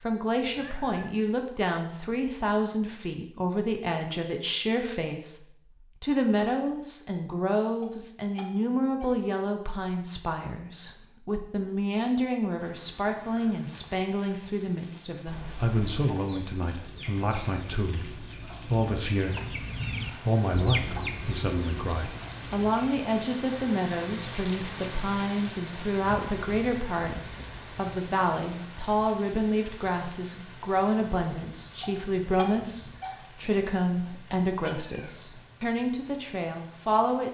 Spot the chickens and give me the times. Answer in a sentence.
You can hear the chickens from 16.0 to 23.0 s.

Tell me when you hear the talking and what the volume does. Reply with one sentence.
You can hear the talking from 0.0 to 37.2 s, at a steady volume.